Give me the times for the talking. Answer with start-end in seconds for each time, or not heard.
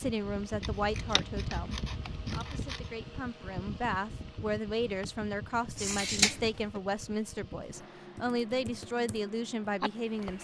0.0-10.3.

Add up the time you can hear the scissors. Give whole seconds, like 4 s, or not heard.
3 s.